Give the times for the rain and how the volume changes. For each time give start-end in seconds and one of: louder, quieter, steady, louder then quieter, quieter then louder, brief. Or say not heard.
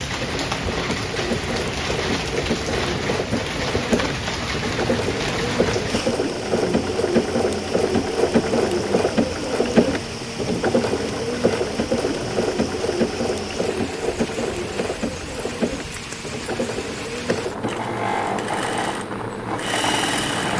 0.0-20.5 quieter.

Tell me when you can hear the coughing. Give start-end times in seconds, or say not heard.
not heard.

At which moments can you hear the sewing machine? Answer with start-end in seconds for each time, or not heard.
0.0-20.5.